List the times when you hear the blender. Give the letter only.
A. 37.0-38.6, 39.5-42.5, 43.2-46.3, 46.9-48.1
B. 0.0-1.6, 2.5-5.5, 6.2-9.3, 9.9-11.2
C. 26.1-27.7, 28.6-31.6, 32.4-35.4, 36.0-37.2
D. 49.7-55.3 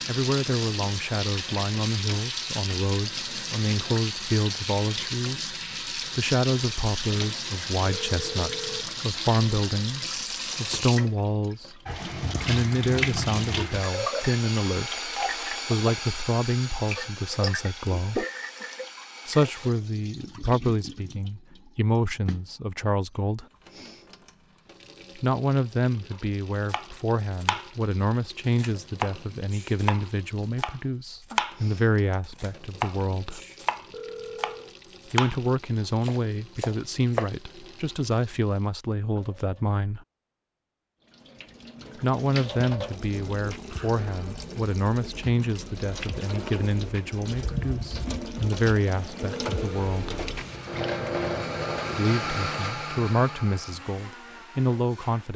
D.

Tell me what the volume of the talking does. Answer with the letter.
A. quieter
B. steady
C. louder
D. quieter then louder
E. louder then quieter
B.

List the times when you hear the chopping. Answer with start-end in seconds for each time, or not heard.
26.1-27.7, 28.6-31.6, 32.4-35.4, 36.0-37.2.